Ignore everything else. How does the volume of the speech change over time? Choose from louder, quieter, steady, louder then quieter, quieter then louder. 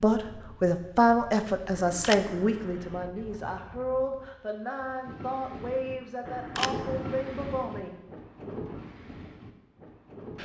quieter.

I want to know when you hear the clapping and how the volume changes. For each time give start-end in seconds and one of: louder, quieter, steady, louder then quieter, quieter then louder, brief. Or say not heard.
not heard.